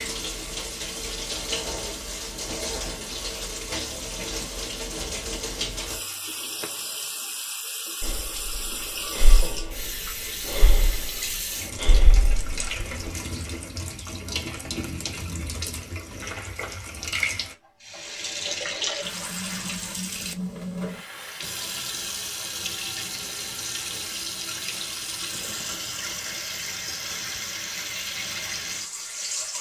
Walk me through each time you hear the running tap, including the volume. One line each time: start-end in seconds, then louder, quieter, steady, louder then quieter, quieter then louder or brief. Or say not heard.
0.0-29.5 steady.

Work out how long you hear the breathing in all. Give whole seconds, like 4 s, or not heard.
5 s.